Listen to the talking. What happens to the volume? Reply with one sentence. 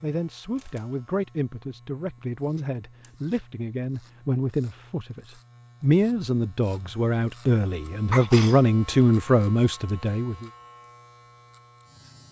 The loudness of the talking goes up.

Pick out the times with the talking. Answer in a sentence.
You can hear the talking from 0.0 to 10.5 s.